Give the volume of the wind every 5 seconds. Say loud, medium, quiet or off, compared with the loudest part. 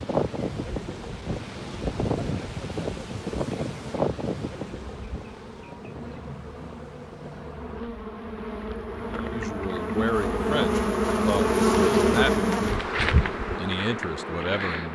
loud, quiet, off.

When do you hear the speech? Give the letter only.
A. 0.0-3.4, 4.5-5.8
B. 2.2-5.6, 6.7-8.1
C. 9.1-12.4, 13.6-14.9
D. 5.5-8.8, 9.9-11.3
C.